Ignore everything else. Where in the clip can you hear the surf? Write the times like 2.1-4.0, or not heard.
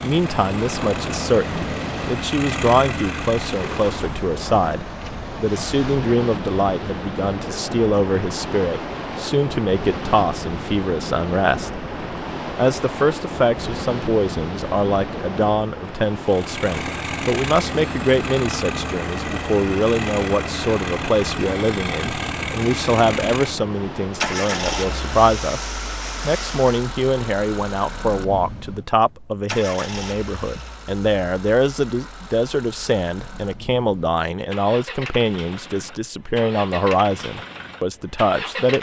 0.0-26.9.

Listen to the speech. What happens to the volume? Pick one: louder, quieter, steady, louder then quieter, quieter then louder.
steady.